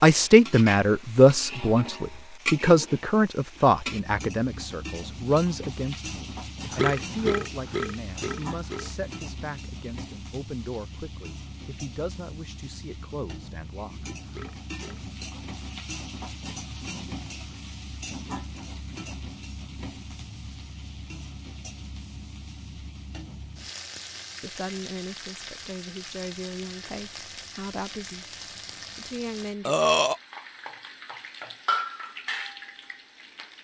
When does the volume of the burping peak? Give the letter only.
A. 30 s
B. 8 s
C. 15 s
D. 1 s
A.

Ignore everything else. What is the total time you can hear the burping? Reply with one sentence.
The burping can be heard for 4 seconds in total.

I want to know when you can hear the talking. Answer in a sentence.
You can hear the talking from 0.0 to 14.1 s and from 24.4 to 29.8 s.